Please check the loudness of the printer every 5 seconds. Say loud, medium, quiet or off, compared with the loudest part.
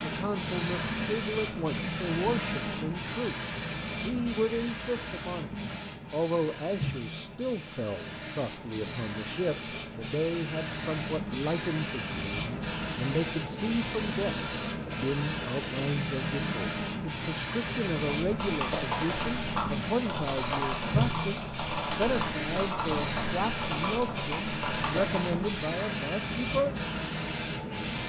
loud, medium, loud, loud, loud, loud.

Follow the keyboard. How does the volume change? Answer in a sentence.
The loudness of the keyboard stays about the same.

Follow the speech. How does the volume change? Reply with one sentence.
The volume of the speech stays about the same.